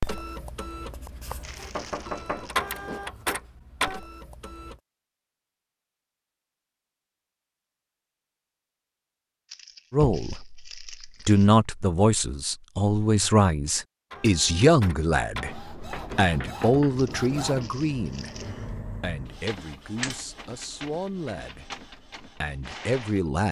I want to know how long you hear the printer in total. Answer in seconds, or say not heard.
14 s.